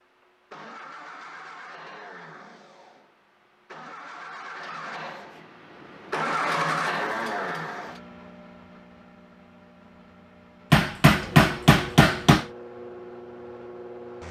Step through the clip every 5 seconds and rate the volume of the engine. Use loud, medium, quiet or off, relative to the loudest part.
medium, loud, medium.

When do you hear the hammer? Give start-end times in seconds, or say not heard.
10.7-12.4.